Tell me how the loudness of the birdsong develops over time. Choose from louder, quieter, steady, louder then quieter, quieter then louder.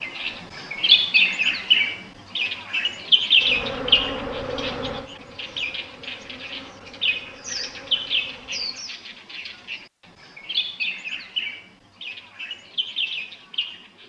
quieter.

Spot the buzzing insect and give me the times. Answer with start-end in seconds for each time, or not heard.
3.4-8.8.